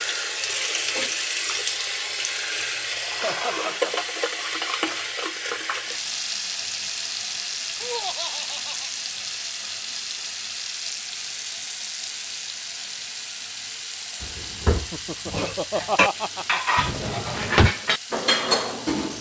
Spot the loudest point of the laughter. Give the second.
16 s.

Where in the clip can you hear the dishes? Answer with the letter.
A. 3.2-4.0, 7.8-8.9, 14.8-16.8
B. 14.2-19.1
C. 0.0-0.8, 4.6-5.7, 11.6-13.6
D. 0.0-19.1
B.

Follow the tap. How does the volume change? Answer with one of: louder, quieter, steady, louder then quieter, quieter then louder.
quieter.